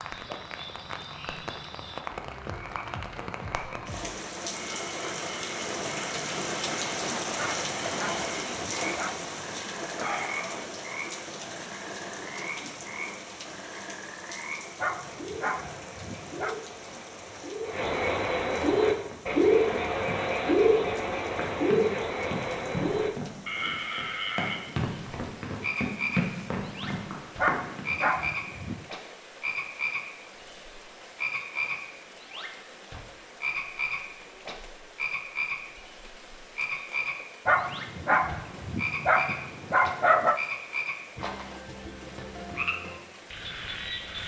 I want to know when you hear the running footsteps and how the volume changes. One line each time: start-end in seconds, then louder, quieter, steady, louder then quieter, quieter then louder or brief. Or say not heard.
18.9-27.9 louder.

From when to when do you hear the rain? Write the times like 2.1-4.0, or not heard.
0.0-44.2.